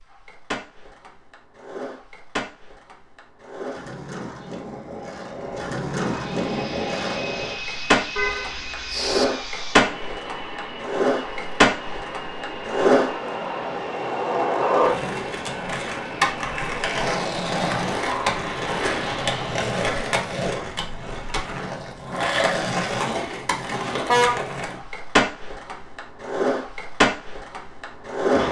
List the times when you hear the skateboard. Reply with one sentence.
The skateboard can be heard from 0.0 to 28.4 s.